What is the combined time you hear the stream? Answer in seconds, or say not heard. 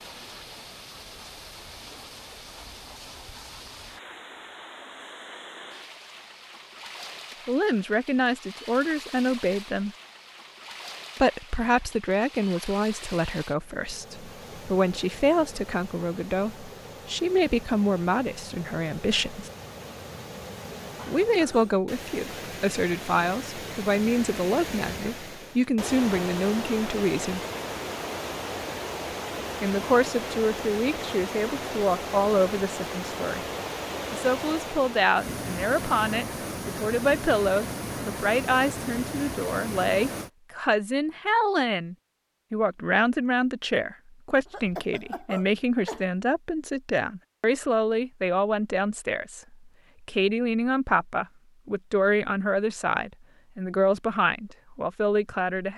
40 s.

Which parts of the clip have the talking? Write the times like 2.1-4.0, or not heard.
7.5-9.9, 11.2-19.5, 21.1-27.4, 29.6-33.5, 34.1-55.7.